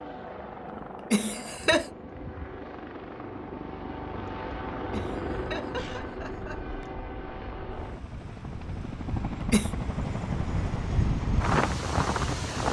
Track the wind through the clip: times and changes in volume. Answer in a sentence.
The wind can be heard from 5.8 to 12.6 s, getting louder.